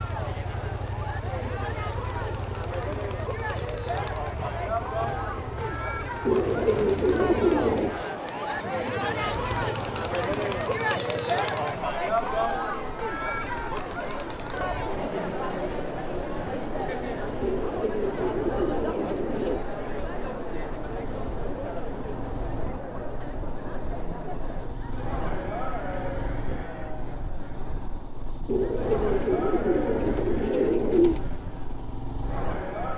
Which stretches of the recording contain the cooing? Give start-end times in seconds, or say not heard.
6.2-8.0, 17.4-19.6, 28.4-31.2.